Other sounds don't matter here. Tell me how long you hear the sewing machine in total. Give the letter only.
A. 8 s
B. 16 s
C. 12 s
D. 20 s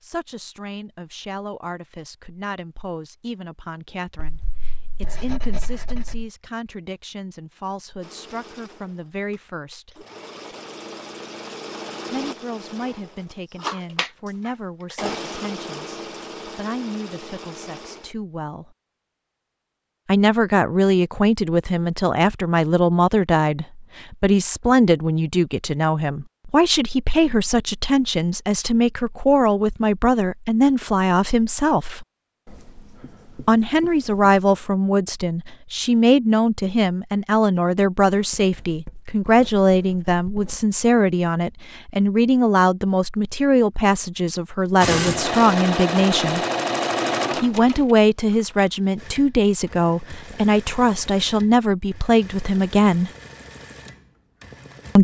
D.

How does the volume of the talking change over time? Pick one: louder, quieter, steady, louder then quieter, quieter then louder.
louder.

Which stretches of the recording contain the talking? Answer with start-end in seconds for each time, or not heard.
0.0-10.1, 12.1-18.8, 20.1-32.0, 33.4-46.4, 47.4-53.1.